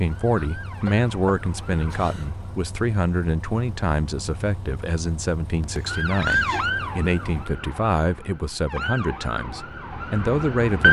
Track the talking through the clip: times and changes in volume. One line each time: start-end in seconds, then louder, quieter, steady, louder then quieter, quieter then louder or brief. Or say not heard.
0.0-10.8 steady.